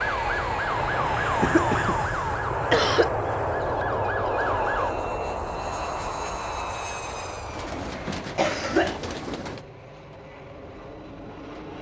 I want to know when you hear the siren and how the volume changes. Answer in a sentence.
The siren can be heard from 0.0 to 5.0 s, getting quieter then louder.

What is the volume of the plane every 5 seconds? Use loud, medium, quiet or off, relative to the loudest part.
loud, medium, quiet.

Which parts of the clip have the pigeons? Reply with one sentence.
You can hear the pigeons from 7.4 to 9.7 s.